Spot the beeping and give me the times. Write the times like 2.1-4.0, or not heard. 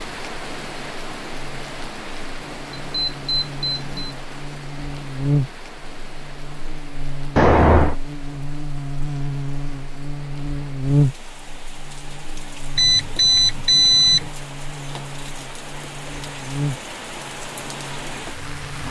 2.9-4.2, 7.3-8.0, 12.8-14.2.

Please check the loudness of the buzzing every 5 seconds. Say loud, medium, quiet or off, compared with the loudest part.
medium, loud, loud, medium.